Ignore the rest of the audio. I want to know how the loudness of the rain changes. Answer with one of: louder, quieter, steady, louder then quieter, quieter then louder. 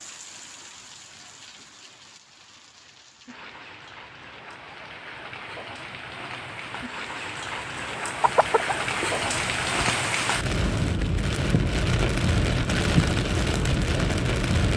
louder.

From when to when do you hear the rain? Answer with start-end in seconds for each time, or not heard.
0.0-14.7.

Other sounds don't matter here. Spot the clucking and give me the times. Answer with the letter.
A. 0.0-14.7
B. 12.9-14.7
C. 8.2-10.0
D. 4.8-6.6
C.